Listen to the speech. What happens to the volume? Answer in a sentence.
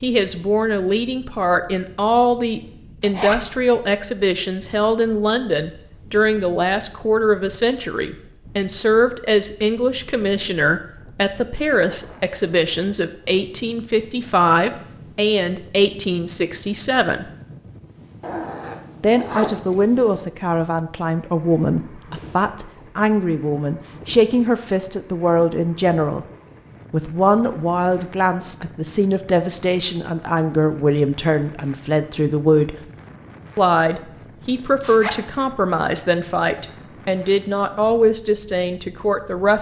The volume of the speech stays about the same.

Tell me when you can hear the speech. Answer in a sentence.
The speech can be heard from 0.0 to 17.3 s, from 19.0 to 26.2 s, from 26.9 to 32.8 s and from 33.5 to 39.5 s.